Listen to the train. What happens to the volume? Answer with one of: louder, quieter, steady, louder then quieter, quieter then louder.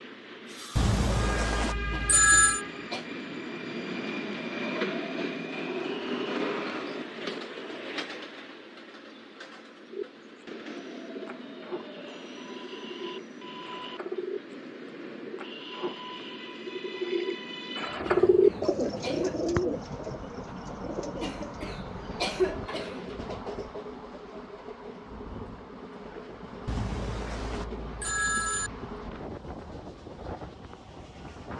quieter.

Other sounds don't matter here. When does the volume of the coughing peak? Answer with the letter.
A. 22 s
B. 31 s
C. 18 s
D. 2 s
A.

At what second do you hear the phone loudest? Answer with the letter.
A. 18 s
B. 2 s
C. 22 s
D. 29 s
B.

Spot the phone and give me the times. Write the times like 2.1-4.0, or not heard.
0.8-2.6, 26.6-28.7.